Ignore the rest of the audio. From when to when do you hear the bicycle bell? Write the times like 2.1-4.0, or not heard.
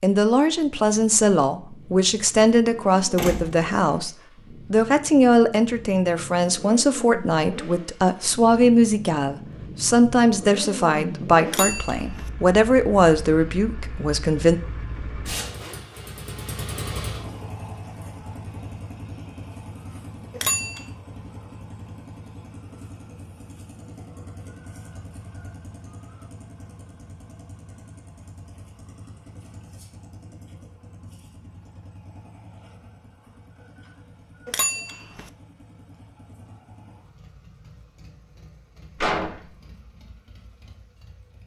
11.4-12.3, 20.3-20.9, 34.5-35.3.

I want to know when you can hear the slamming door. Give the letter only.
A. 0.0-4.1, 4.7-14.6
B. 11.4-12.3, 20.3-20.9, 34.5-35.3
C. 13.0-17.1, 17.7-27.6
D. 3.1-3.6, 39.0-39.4
D.